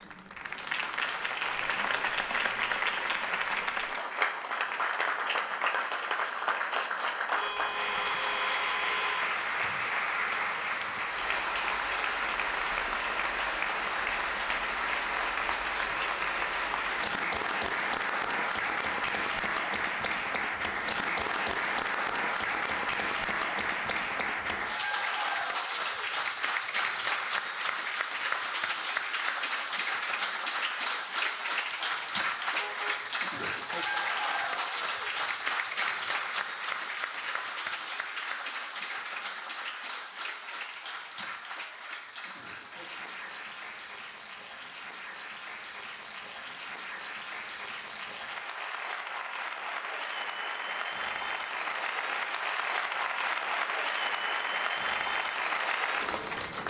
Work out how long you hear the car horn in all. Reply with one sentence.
You can hear the car horn for 3 seconds altogether.